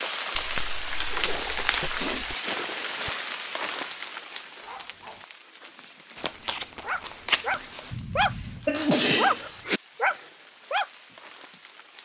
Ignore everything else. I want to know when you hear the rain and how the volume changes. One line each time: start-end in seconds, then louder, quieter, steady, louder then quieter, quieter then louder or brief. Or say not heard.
0.0-12.0 quieter.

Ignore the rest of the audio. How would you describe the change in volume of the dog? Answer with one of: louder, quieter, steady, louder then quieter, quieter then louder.
louder.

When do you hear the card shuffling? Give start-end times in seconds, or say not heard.
0.3-2.4, 6.2-7.8.